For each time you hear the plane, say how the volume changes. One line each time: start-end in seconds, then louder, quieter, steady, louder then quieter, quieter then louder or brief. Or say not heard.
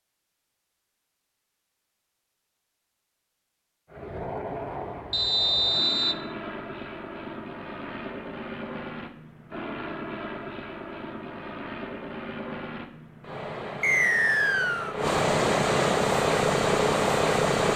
3.9-17.7 louder.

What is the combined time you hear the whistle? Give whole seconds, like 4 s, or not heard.
2 s.